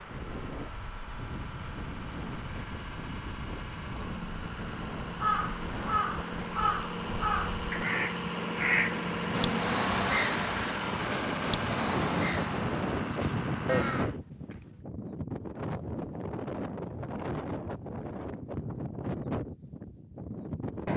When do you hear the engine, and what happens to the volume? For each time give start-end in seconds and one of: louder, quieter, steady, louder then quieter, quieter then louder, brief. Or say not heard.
0.0-14.2 louder.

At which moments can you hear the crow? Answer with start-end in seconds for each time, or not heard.
5.2-14.6.